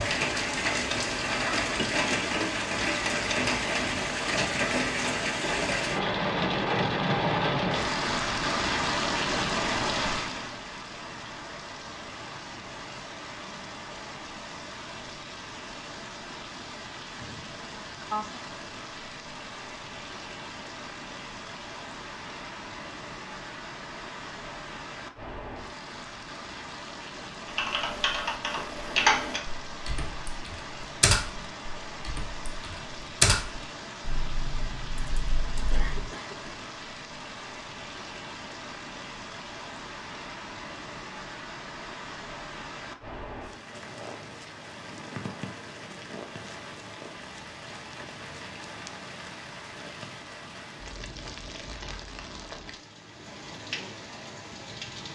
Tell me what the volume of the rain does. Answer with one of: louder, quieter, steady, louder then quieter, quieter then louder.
quieter.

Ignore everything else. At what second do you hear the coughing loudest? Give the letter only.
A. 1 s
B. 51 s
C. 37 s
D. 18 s
D.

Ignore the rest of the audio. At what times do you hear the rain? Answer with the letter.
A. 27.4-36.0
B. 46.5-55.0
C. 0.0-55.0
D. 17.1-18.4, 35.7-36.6
C.